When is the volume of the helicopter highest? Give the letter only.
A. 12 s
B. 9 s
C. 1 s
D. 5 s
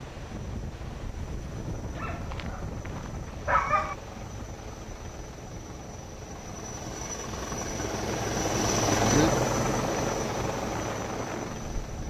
B.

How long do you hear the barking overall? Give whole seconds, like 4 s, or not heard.
2 s.